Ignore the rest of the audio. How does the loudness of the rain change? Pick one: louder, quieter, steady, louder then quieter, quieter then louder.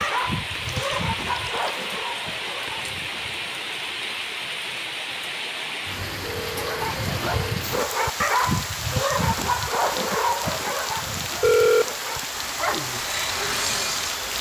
steady.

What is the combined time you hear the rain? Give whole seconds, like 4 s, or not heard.
14 s.